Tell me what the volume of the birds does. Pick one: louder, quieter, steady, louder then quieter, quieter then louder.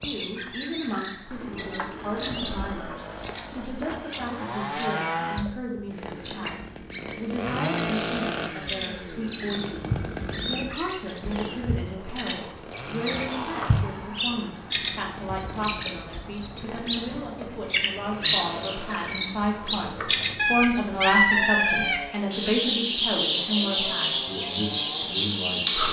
louder.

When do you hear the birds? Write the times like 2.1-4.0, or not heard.
0.0-25.8.